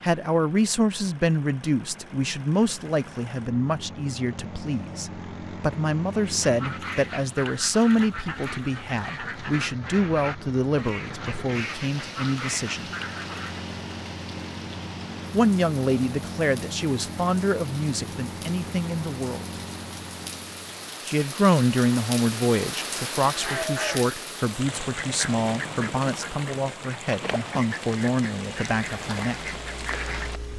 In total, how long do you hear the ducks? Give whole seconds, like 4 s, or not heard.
15 s.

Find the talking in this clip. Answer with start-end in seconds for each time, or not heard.
0.0-12.9, 15.3-19.4, 21.1-29.5.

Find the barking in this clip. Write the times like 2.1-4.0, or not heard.
not heard.